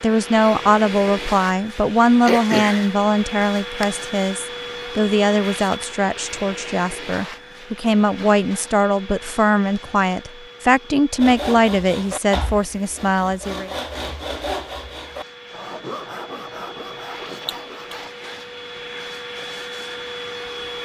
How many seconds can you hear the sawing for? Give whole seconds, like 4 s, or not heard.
7 s.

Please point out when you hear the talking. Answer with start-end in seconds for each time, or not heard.
0.0-13.7.